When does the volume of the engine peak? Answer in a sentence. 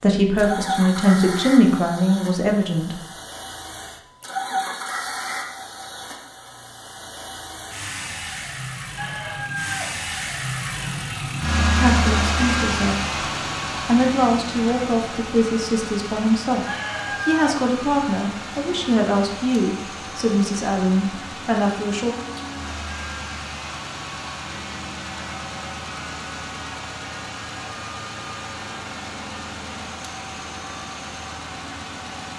The volume of the engine peaks at 12 seconds.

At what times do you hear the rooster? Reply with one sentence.
The rooster can be heard from 8.9 to 9.9 s and from 16.6 to 17.6 s.